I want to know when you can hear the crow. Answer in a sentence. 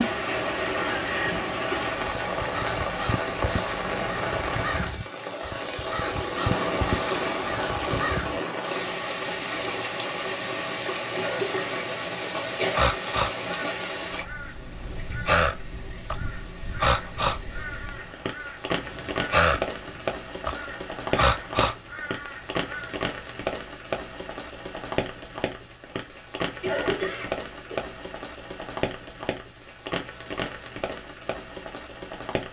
The crow can be heard from 0.0 to 8.4 s and from 12.7 to 22.9 s.